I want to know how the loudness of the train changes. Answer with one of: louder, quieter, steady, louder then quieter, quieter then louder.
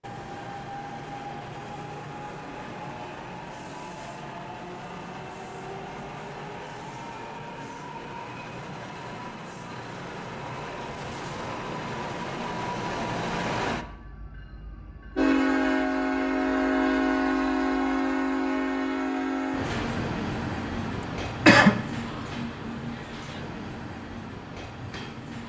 louder then quieter.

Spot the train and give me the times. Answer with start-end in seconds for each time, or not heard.
0.0-25.4.